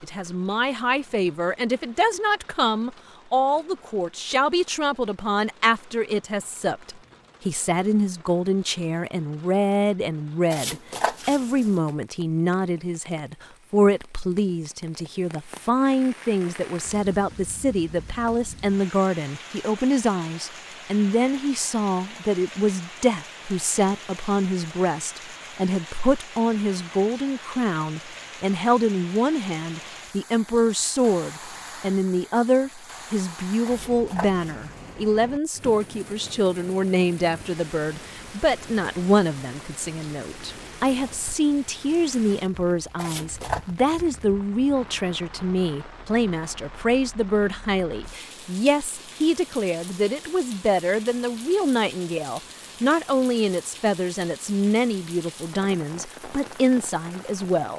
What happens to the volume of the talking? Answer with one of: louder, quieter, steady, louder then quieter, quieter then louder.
steady.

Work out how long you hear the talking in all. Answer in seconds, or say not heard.
58 s.